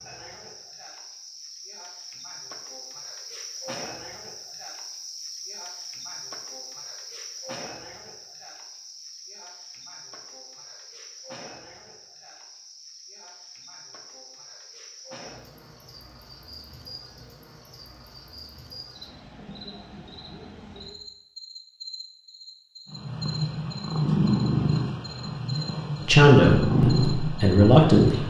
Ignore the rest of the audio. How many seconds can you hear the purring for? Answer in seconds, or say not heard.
5 s.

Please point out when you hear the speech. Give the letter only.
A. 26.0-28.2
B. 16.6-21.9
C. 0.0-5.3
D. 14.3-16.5
A.